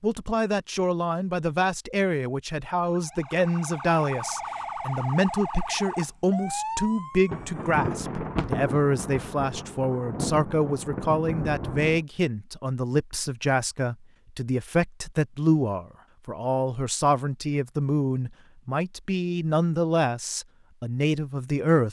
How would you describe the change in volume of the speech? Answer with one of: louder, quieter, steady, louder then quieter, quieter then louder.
steady.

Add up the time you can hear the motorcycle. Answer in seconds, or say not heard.
not heard.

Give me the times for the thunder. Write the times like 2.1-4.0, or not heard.
7.2-12.1.